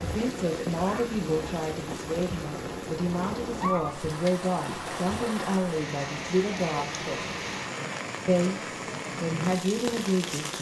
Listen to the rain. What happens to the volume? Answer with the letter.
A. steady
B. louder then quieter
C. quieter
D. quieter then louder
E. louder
A.